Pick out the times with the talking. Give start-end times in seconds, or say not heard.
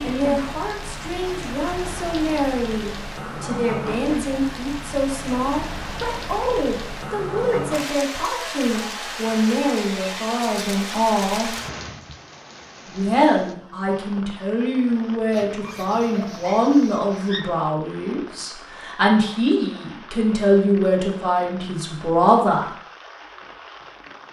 0.0-11.6, 12.8-22.6.